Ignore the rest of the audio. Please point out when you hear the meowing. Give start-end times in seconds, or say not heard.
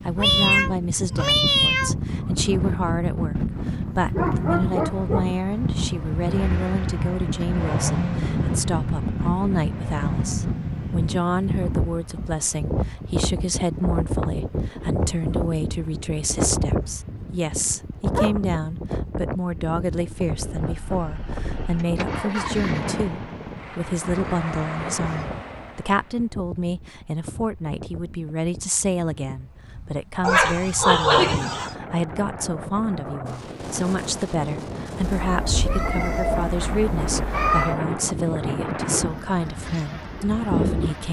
0.1-1.9, 35.0-37.8.